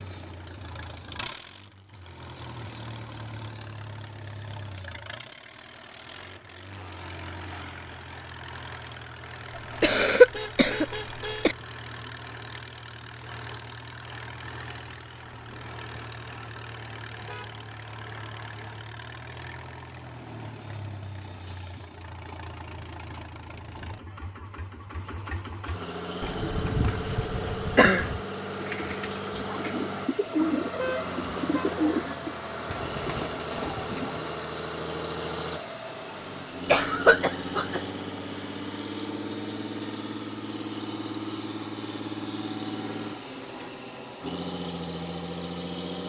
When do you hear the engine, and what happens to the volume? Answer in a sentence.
The engine can be heard from 0.0 to 46.0 s, getting louder.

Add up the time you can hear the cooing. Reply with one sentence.
The cooing can be heard for 8 seconds in total.